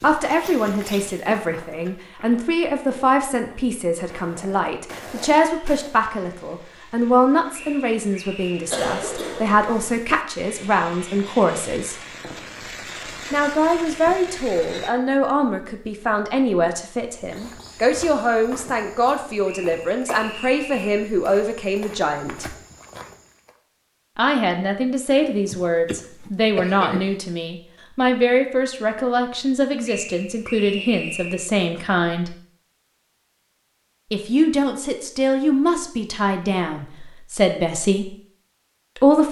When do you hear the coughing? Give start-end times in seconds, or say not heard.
8.7-10.2, 25.2-27.1.